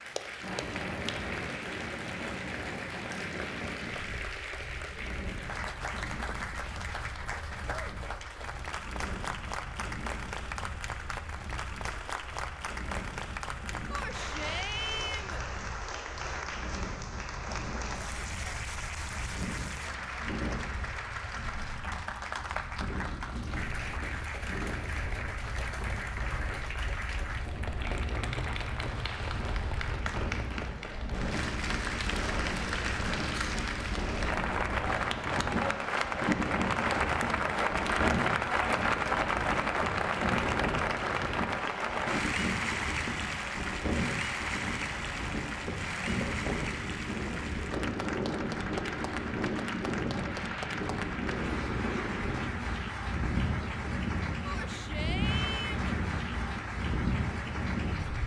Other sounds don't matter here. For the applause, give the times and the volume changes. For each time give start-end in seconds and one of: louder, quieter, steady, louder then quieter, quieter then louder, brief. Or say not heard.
0.0-58.2 louder then quieter.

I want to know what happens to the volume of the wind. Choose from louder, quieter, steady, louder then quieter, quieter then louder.
louder.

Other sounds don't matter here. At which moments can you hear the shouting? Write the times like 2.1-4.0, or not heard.
13.9-15.4, 54.4-55.9.